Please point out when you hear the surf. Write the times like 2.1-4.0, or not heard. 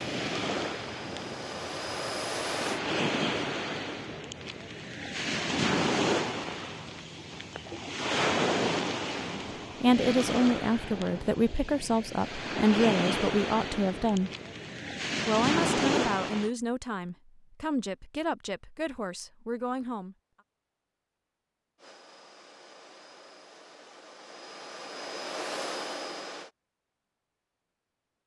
0.0-16.5.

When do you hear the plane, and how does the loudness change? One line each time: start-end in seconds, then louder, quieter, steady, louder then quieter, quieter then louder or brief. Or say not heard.
0.0-2.8 brief
21.8-26.5 louder.